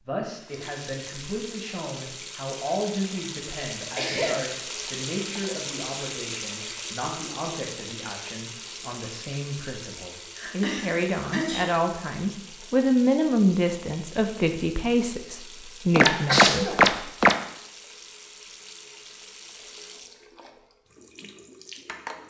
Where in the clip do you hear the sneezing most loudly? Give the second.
16 s.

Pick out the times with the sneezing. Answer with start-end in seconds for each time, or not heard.
4.0-4.4, 10.3-11.7, 16.0-16.8.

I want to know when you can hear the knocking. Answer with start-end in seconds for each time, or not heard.
15.9-17.4.